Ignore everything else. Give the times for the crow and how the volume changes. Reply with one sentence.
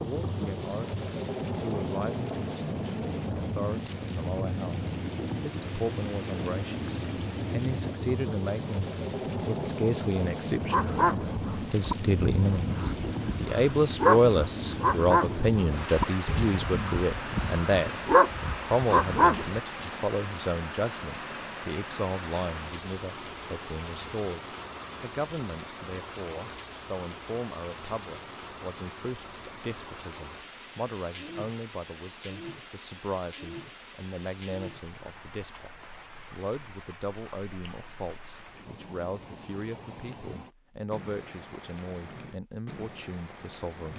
You can't hear the crow here.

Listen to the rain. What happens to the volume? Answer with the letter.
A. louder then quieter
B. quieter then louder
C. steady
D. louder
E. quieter
E.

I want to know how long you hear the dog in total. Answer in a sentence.
You can hear the dog for 9 seconds altogether.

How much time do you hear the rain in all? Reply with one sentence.
The rain can be heard for 44 seconds in total.